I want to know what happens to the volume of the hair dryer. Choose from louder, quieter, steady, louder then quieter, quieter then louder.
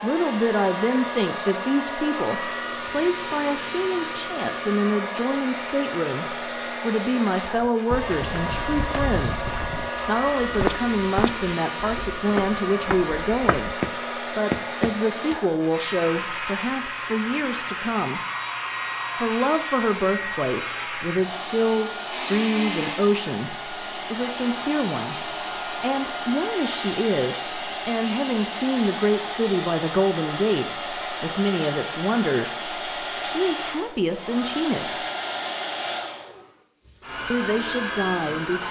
steady.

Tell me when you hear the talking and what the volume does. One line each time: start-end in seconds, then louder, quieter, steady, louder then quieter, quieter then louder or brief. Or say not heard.
0.0-18.2 steady
19.1-35.0 steady
37.3-38.6 brief.